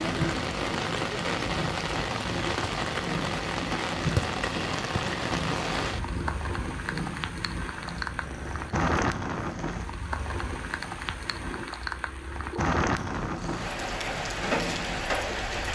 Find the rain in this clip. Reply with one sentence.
You can hear the rain from 0.0 to 15.7 s.